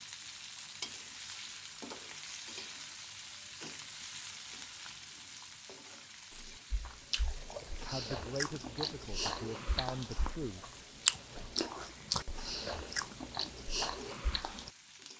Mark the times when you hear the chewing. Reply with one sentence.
The chewing can be heard from 6.3 to 14.7 s.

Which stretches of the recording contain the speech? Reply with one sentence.
The speech can be heard from 7.7 to 10.7 s.